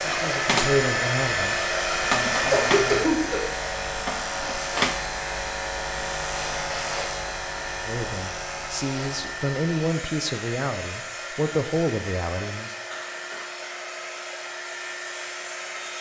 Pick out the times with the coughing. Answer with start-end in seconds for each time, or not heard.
2.2-3.4, 12.9-13.4.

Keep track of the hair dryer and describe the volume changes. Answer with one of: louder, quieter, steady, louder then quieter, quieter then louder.
quieter.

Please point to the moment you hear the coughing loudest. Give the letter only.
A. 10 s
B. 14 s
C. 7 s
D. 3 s
D.